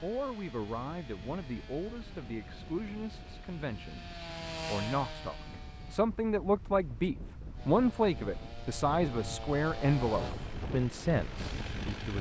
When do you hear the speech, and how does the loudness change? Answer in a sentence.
You can hear the speech from 0.0 to 12.1 s, getting louder.